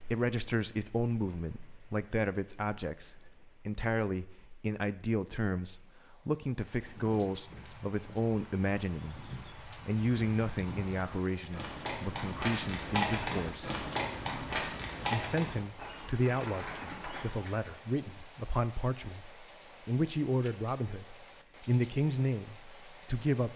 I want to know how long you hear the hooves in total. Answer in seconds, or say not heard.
11 s.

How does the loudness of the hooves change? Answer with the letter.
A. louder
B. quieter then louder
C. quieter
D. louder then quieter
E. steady
D.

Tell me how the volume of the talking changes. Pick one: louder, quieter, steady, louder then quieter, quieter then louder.
steady.